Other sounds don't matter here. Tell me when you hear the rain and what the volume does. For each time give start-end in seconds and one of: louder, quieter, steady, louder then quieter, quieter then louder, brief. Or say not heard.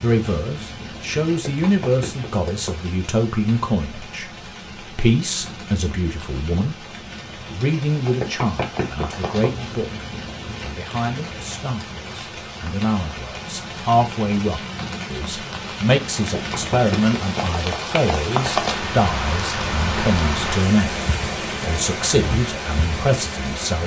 0.0-23.8 louder.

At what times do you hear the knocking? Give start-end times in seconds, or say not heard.
1.4-2.8, 8.1-9.6, 16.2-17.4.